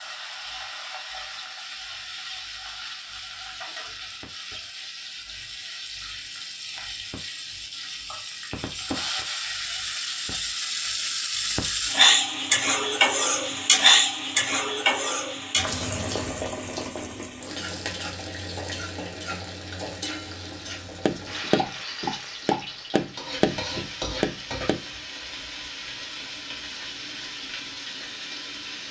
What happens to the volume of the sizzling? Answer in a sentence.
The volume of the sizzling goes up, then down.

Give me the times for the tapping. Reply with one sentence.
The tapping can be heard from 21.1 to 24.8 s.